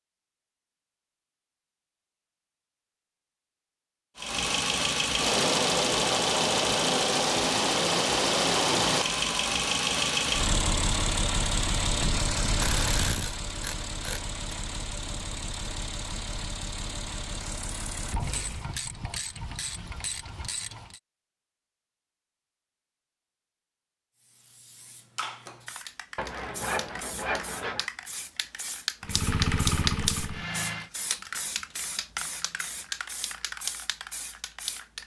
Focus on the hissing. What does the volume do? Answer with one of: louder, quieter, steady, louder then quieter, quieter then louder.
louder then quieter.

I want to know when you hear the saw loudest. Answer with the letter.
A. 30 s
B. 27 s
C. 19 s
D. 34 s
B.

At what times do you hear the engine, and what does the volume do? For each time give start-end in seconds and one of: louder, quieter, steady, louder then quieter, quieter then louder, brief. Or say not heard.
4.2-18.7 quieter
29.0-30.9 brief.